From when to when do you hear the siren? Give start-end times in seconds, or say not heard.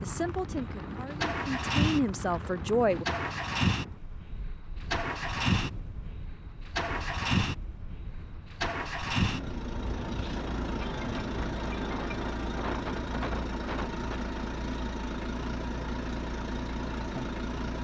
not heard.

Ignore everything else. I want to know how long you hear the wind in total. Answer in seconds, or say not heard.
14 s.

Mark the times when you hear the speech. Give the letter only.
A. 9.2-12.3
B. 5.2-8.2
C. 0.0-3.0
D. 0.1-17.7
C.